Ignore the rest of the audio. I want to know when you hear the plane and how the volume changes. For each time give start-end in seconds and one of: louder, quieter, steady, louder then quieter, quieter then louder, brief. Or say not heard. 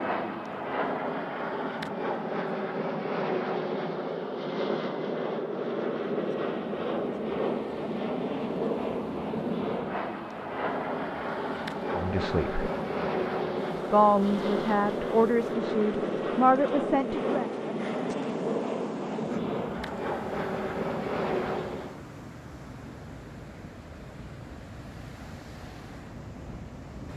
0.0-22.1 steady.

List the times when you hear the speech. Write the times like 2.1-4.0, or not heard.
11.9-12.6, 13.9-17.4.